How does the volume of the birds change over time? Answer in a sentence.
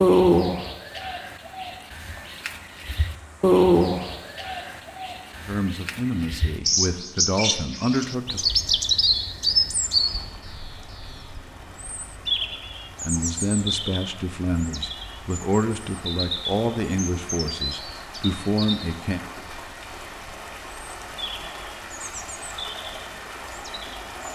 The volume of the birds goes down.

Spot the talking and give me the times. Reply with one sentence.
The talking can be heard from 5.5 to 8.4 s and from 13.0 to 19.2 s.